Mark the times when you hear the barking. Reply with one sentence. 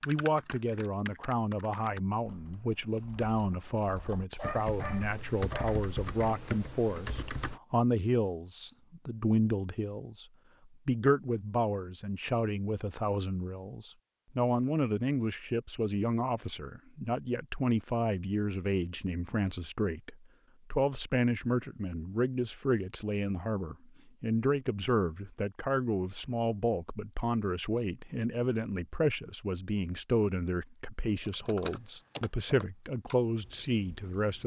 The barking can be heard from 4.3 to 5.8 s.